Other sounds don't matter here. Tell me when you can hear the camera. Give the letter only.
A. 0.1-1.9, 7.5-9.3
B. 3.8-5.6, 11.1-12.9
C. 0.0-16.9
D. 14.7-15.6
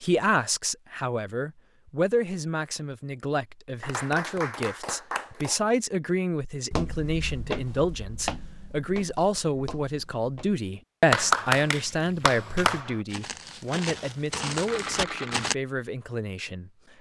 D.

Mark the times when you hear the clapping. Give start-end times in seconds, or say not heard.
3.8-5.6, 11.1-12.9.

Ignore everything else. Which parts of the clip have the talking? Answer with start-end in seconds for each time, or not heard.
0.0-16.9.